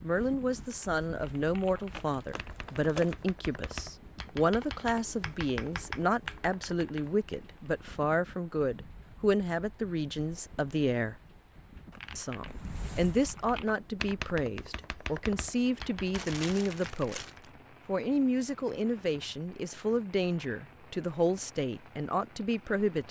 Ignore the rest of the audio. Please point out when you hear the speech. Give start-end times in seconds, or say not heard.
0.0-11.2, 12.2-17.2, 17.9-23.0.